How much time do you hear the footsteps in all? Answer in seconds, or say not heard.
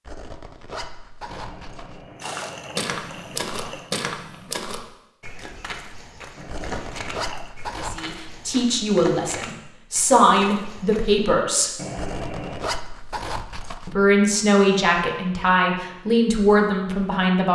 9 s.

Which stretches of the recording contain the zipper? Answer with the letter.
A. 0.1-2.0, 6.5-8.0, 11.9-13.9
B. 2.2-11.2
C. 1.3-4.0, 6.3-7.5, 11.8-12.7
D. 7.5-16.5
A.